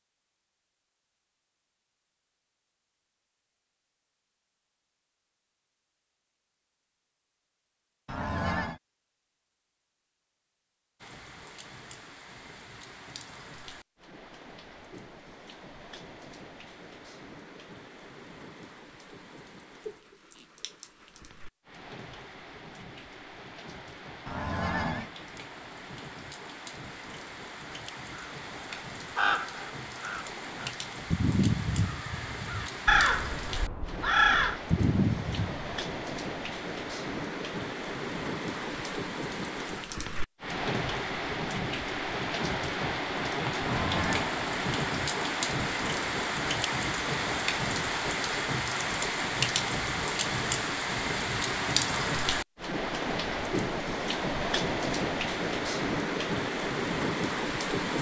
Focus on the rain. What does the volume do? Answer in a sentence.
The loudness of the rain goes up.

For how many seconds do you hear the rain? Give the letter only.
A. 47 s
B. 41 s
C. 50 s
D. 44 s
A.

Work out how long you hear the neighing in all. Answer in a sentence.
You can hear the neighing for 2 seconds altogether.